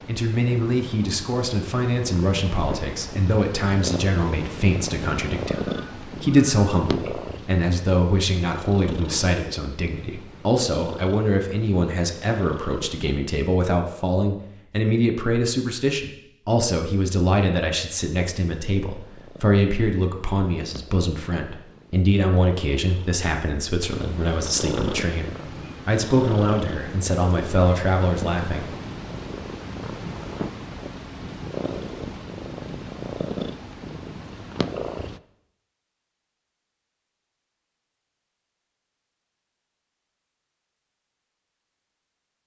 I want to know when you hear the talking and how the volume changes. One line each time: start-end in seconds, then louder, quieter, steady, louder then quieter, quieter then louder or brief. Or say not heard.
0.1-28.7 steady.